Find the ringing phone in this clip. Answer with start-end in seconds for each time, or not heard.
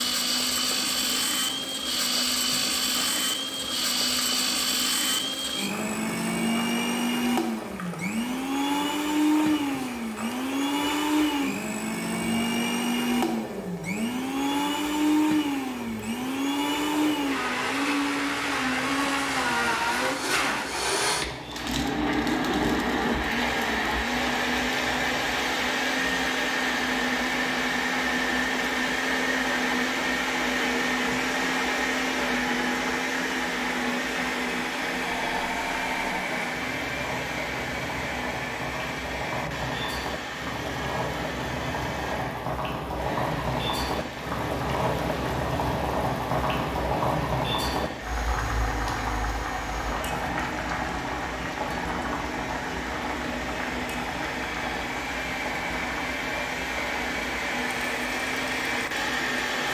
35.0-36.3.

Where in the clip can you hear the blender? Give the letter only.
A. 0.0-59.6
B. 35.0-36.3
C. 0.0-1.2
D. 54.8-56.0
A.